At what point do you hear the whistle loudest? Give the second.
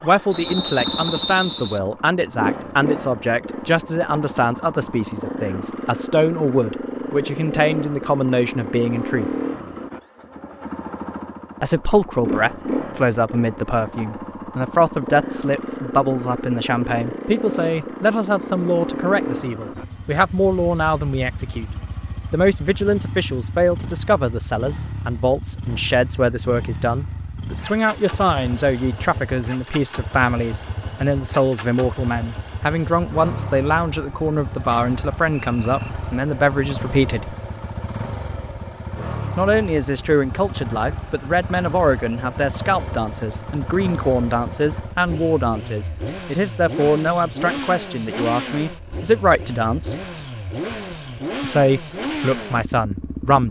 1 s.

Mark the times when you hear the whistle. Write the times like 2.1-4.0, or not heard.
0.3-1.8, 34.6-35.9.